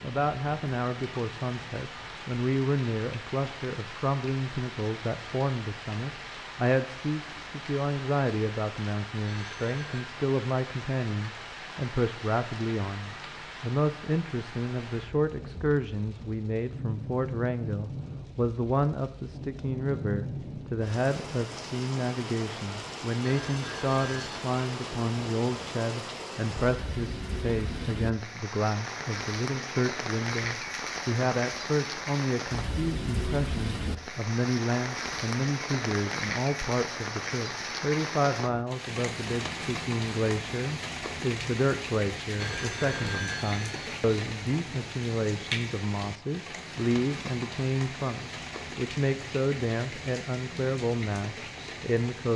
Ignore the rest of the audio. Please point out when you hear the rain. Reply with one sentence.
The rain can be heard from 0.0 to 52.3 s.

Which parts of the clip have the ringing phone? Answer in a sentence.
You can hear the ringing phone from 9.2 to 10.1 s, from 23.2 to 24.4 s and from 42.4 to 43.9 s.